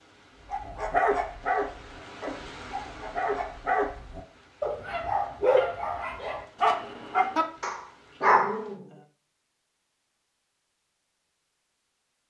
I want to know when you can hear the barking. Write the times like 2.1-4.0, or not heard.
0.5-8.8.